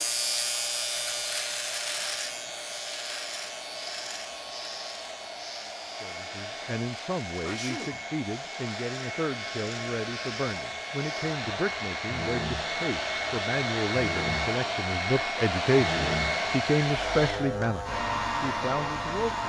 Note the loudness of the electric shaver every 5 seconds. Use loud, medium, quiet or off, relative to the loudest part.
loud, medium, medium, loud.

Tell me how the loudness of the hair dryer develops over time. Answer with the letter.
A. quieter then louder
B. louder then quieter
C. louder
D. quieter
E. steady
C.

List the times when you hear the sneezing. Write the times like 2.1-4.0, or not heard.
7.4-8.1.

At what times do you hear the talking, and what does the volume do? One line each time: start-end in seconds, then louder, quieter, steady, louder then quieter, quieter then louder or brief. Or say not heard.
6.0-19.4 louder.